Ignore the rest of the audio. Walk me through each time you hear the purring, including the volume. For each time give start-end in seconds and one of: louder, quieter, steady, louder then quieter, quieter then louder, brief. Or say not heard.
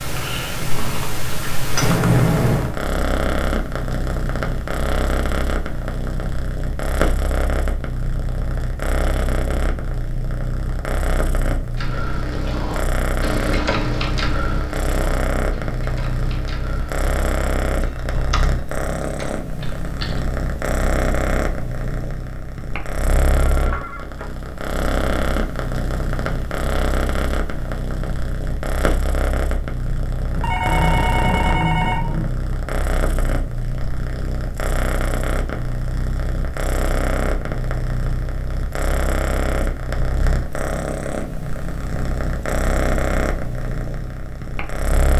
0.0-45.1 steady.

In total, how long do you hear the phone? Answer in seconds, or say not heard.
4 s.